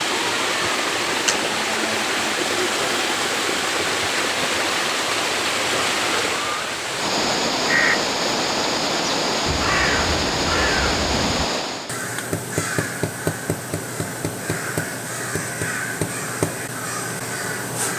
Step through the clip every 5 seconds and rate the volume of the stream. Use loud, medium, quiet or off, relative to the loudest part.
loud, loud, loud, off.